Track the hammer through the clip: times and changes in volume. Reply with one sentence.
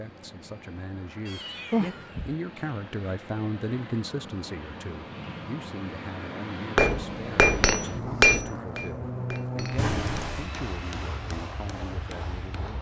The hammer can be heard from 6.8 to 12.7 s, getting quieter.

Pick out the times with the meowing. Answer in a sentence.
The meowing can be heard from 1.2 to 2.4 s and from 9.8 to 10.5 s.